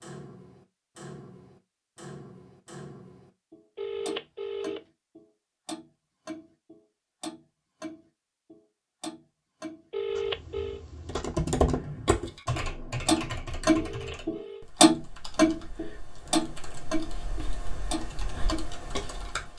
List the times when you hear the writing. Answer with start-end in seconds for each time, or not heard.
not heard.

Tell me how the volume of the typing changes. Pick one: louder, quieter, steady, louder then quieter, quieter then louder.
quieter then louder.